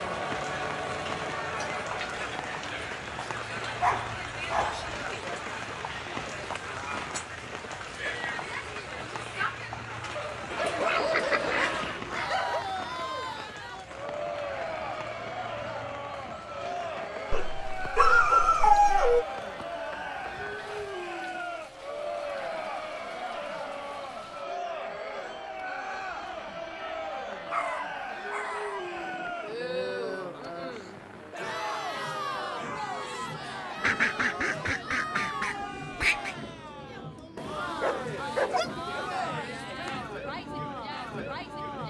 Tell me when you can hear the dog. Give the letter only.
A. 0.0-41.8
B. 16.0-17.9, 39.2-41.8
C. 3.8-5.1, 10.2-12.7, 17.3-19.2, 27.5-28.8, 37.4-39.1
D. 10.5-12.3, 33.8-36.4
C.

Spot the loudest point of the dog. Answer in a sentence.
The loudest moment of the dog is at 19 seconds.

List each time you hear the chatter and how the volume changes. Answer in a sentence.
The chatter can be heard from 0.0 to 41.8 s, at a steady volume.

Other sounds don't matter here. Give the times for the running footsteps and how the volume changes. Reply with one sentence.
The running footsteps can't be heard in this clip.